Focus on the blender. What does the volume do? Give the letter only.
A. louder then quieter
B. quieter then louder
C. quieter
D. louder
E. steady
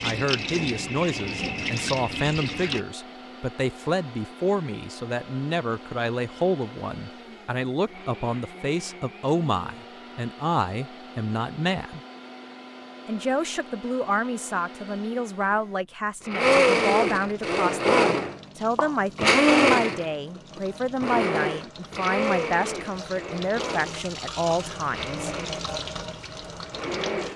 A.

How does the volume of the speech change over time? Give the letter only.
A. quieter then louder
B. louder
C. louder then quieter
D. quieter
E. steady
E.